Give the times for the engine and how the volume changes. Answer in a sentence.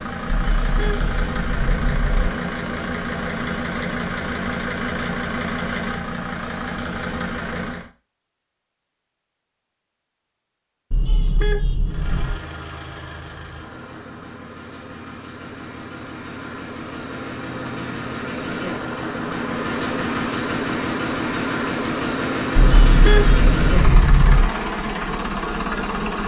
You can hear the engine from 0.0 to 7.9 s, at a steady volume; and from 11.8 to 26.2 s, getting louder.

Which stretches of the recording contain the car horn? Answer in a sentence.
You can hear the car horn from 0.2 to 2.3 s, from 10.9 to 12.4 s and from 22.6 to 24.5 s.